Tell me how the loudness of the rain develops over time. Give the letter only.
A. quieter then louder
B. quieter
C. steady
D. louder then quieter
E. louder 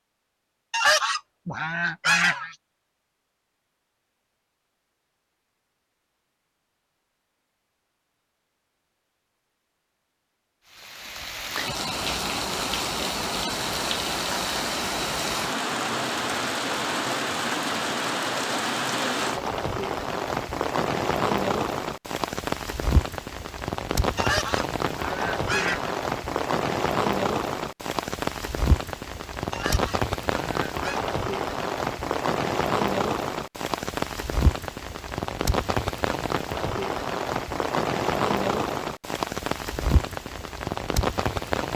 C.